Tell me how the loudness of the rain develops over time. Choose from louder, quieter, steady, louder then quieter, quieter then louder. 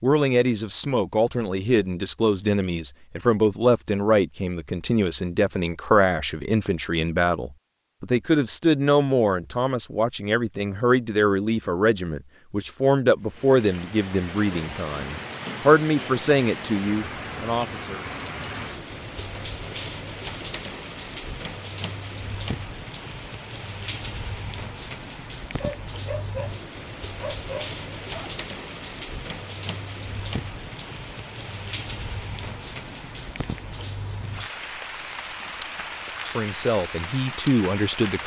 steady.